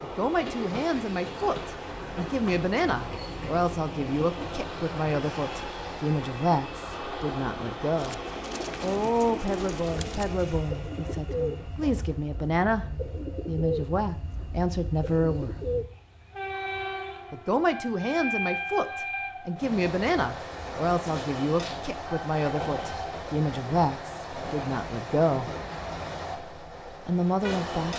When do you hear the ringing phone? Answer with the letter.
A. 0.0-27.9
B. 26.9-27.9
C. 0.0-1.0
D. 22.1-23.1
D.